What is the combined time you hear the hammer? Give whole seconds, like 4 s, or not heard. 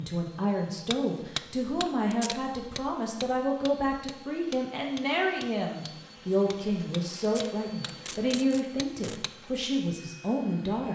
8 s.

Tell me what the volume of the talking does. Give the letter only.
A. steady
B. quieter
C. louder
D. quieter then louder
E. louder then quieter
A.